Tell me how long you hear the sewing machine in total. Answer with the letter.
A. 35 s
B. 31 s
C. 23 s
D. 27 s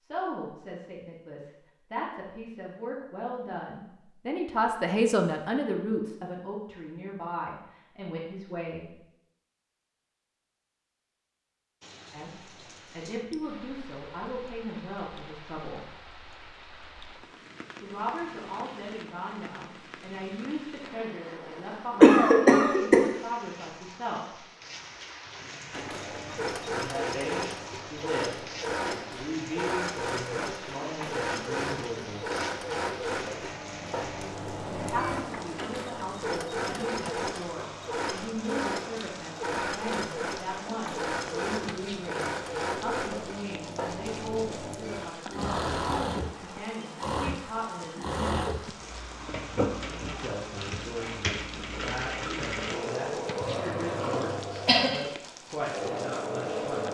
B.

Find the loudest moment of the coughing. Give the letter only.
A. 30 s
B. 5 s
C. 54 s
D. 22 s
D.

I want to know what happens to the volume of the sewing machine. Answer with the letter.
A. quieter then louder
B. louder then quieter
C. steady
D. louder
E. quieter
C.